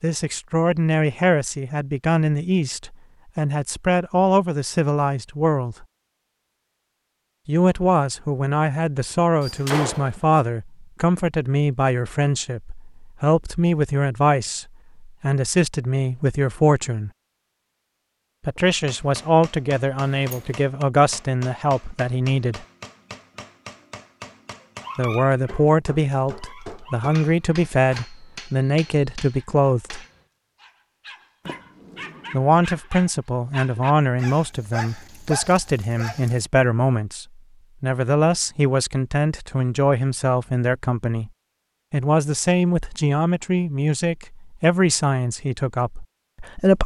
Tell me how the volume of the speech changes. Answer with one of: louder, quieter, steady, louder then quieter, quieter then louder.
steady.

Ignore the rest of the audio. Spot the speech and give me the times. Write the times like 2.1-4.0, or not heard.
0.0-5.8, 7.5-17.1, 18.4-22.6, 24.9-30.0, 32.3-41.3, 41.9-46.8.